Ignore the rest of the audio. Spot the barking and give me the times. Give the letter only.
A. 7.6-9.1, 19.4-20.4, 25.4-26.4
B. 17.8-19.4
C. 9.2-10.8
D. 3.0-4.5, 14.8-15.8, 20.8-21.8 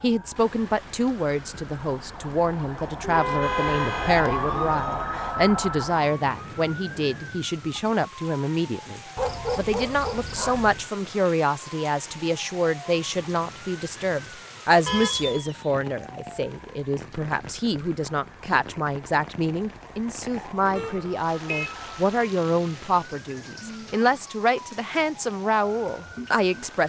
C.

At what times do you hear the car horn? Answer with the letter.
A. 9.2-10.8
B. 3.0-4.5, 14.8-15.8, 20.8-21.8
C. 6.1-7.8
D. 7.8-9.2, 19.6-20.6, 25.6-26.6
B.